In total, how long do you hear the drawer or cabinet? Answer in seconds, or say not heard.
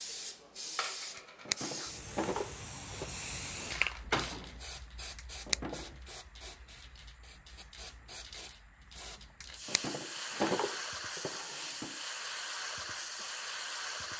5 s.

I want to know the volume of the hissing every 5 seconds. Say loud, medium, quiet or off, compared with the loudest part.
loud, medium, loud.